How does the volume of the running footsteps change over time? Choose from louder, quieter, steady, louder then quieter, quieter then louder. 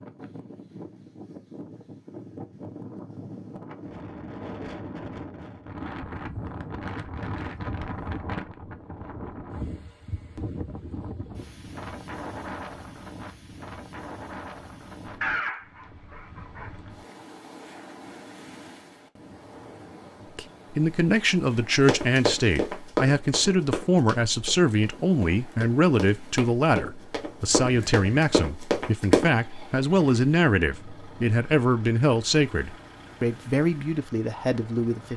quieter then louder.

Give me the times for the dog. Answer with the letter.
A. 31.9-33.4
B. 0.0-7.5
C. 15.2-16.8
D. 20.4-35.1
C.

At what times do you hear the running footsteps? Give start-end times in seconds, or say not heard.
21.9-29.3.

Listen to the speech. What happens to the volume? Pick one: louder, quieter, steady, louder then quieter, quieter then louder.
steady.